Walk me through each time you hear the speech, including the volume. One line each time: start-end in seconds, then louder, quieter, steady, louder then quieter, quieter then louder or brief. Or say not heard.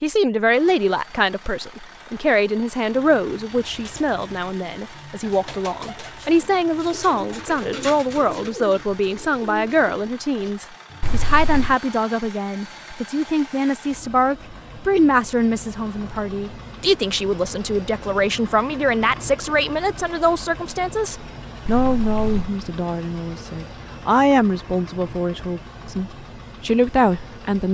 0.0-27.6 steady.